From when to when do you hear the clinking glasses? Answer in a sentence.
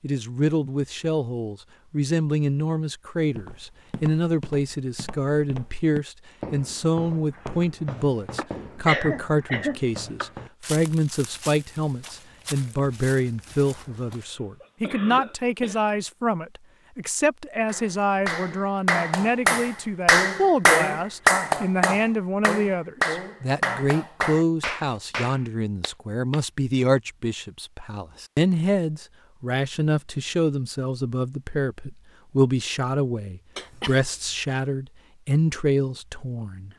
The clinking glasses can't be heard in this clip.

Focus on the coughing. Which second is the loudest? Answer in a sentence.
The loudest moment of the coughing is at 9 seconds.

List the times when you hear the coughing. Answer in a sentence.
The coughing can be heard from 8.3 to 10.3 s, from 14.1 to 16.0 s and from 33.5 to 34.0 s.